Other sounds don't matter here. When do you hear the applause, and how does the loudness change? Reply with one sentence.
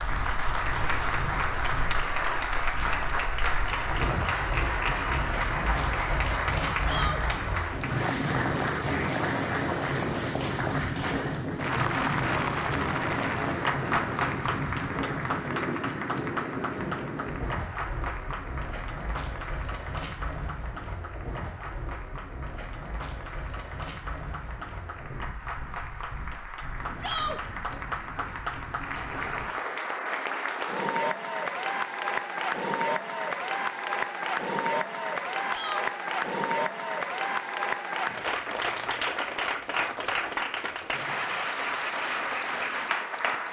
The applause can be heard from 0.0 to 43.4 s, getting quieter then louder.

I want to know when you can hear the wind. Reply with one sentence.
The wind can be heard from 0.0 to 29.4 s.